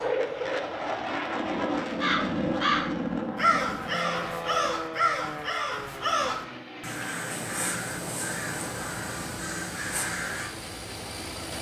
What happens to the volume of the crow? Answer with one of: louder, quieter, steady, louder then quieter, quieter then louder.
quieter.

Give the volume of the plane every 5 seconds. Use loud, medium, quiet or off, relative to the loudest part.
loud, medium, medium.